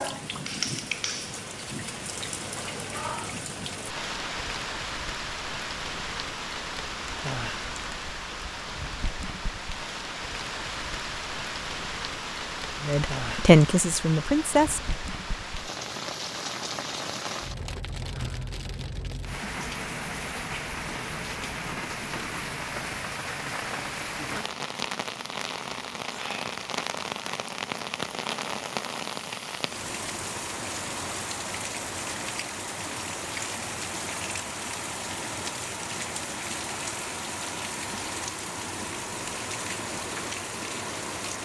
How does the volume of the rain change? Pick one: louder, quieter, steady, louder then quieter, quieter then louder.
steady.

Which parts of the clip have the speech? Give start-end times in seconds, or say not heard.
12.8-14.9.